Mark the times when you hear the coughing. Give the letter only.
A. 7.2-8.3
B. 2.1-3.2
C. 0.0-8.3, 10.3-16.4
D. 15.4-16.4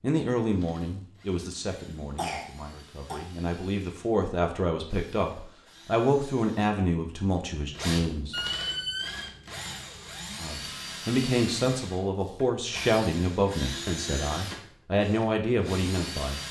B.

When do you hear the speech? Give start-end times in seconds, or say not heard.
0.0-8.3, 10.3-16.4.